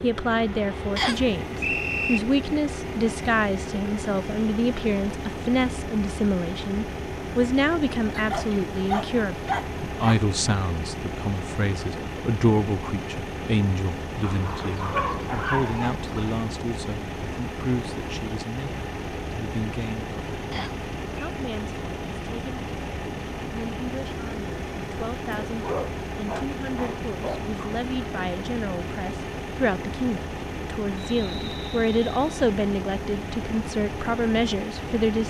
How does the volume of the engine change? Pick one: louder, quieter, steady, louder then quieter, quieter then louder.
steady.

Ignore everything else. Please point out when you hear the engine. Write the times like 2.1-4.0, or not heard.
0.0-35.2.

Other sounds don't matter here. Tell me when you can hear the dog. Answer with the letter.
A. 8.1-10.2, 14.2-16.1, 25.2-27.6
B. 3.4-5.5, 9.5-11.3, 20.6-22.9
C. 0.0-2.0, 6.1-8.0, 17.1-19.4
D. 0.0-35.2
A.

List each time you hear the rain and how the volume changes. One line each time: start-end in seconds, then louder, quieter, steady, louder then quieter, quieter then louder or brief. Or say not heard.
not heard.